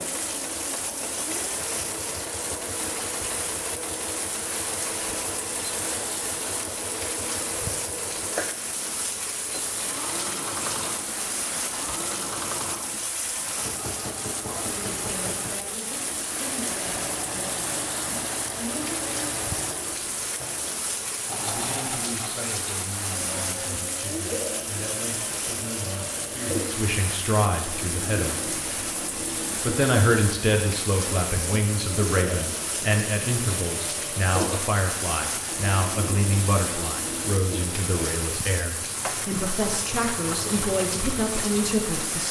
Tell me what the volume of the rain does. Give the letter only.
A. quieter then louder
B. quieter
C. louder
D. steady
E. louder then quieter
D.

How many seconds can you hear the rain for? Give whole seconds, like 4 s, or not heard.
42 s.